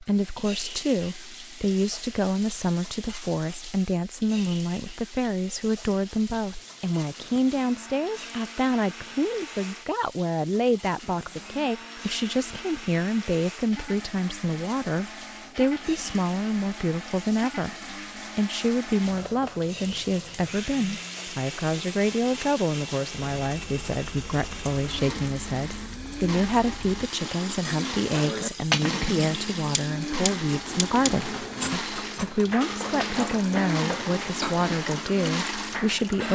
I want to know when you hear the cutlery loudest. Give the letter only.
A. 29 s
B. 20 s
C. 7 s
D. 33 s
A.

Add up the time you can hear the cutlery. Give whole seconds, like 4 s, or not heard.
7 s.